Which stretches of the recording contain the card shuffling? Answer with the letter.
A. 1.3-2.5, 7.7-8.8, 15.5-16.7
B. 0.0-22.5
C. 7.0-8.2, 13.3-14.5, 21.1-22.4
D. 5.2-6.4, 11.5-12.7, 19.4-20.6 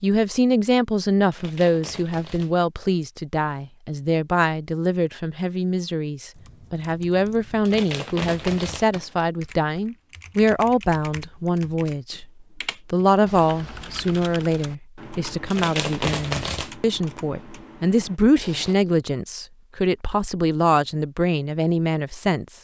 A.